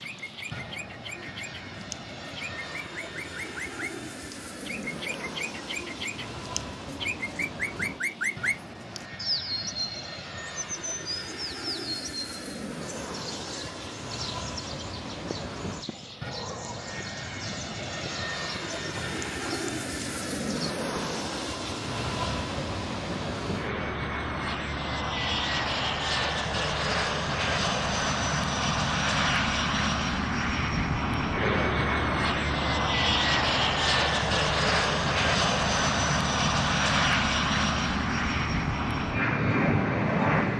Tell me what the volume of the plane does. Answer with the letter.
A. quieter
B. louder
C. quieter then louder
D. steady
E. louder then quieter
B.